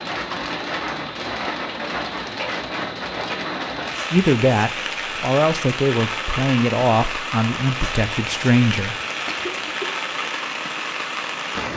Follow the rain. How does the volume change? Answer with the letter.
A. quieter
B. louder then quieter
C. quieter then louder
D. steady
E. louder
D.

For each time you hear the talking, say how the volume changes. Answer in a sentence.
The talking can be heard from 4.1 to 8.9 s, at a steady volume.